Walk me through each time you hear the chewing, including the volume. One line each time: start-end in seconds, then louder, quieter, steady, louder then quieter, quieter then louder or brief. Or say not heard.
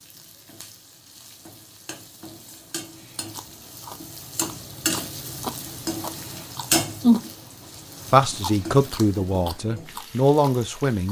3.3-7.3 louder then quieter
8.3-11.0 brief.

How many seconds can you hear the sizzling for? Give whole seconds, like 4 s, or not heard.
11 s.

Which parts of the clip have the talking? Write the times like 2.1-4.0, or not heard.
8.1-11.0.